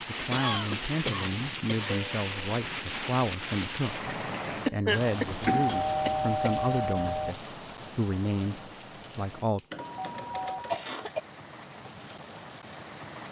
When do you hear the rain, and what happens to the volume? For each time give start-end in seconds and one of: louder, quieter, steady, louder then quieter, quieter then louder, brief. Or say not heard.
0.0-13.2 quieter.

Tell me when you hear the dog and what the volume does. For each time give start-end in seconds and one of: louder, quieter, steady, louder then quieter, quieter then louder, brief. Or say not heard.
not heard.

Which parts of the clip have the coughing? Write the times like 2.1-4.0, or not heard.
0.3-1.9, 4.7-6.5, 10.2-11.2.